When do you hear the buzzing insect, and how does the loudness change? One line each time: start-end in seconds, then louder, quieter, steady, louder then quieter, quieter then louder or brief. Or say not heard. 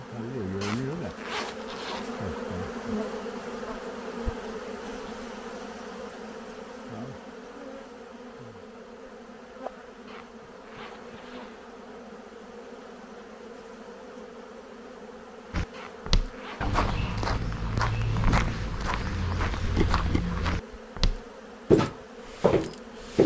0.0-23.2 quieter.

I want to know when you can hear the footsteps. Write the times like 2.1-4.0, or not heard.
15.5-23.2.